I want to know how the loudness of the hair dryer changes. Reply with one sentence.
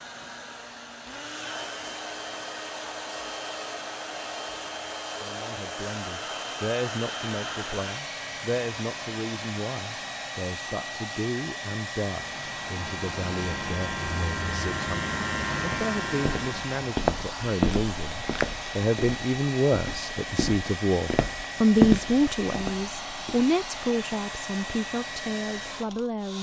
The volume of the hair dryer stays about the same.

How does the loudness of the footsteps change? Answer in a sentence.
The volume of the footsteps goes down, then up.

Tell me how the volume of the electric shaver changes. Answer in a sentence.
The loudness of the electric shaver goes up.